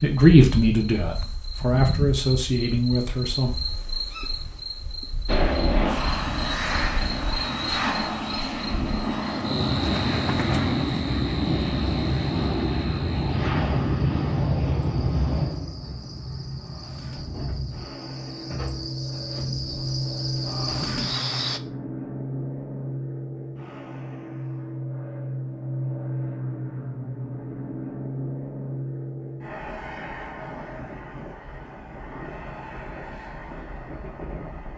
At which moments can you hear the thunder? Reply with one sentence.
You can't hear the thunder here.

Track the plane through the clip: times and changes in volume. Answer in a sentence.
The plane can be heard from 5.2 to 34.7 s, getting quieter.